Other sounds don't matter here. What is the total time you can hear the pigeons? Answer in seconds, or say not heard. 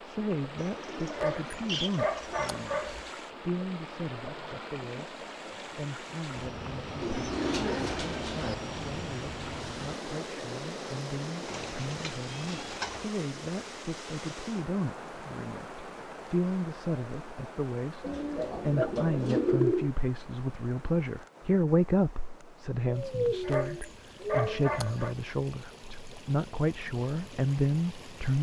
9 s.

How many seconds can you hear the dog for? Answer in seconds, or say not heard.
4 s.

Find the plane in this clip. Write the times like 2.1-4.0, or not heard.
6.3-12.8.